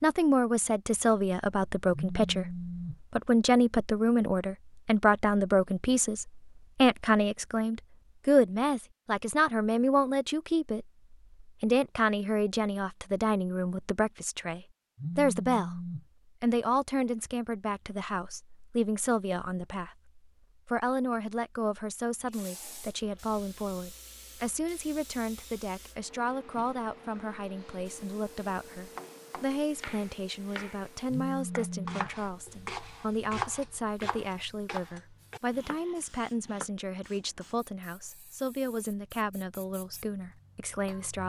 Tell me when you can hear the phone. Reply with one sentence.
You can hear the phone from 1.9 to 3.0 s, from 14.9 to 16.1 s and from 31.1 to 32.1 s.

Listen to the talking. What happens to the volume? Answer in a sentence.
The volume of the talking goes down.